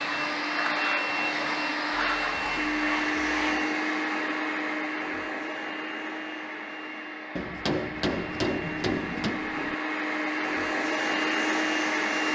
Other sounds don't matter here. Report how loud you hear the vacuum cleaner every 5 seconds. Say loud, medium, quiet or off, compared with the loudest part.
loud, medium, loud.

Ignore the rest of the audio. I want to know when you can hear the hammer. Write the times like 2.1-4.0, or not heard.
7.3-9.4.